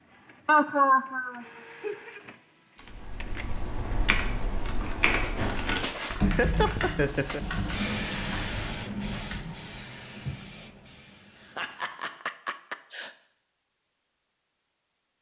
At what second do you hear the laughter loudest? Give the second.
1 s.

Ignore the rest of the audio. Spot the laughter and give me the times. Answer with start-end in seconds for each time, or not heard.
0.5-2.2, 6.2-7.4, 11.4-13.1.